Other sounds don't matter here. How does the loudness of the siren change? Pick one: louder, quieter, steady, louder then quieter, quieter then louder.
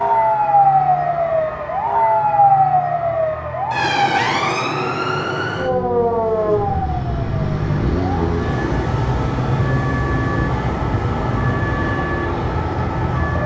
quieter.